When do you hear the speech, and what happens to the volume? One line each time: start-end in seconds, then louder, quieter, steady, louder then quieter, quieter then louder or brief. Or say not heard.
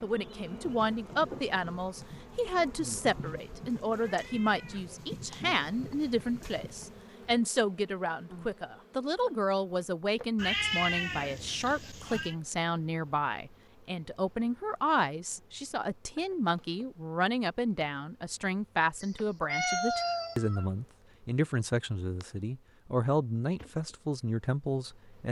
0.0-25.2 steady.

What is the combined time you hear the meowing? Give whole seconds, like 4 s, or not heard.
6 s.